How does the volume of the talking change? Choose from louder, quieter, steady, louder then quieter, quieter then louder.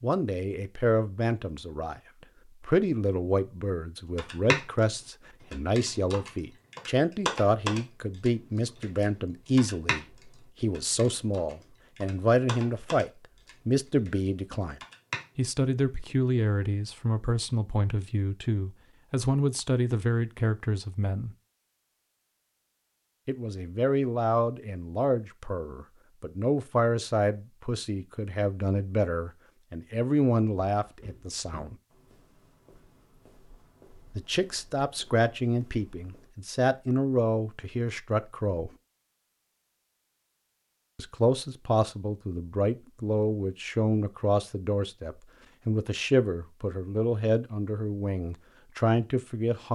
steady.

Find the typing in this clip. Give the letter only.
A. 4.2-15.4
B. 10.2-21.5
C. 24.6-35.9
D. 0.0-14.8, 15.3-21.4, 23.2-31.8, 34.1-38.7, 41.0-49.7
A.